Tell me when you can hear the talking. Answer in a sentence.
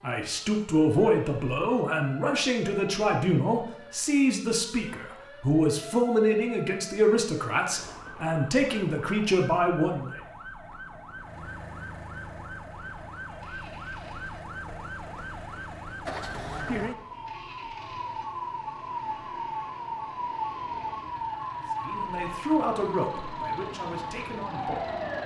You can hear the talking from 0.0 to 10.2 s and from 21.7 to 25.0 s.